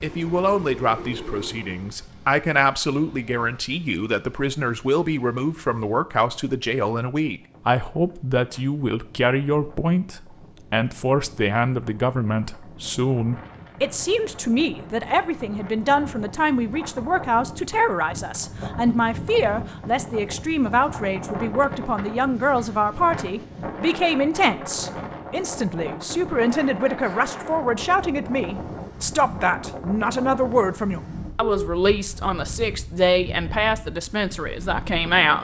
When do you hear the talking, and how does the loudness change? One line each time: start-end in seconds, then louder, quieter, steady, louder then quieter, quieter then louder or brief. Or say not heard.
0.0-35.3 steady.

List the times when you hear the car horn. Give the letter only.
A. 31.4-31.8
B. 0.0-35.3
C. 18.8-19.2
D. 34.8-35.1
A.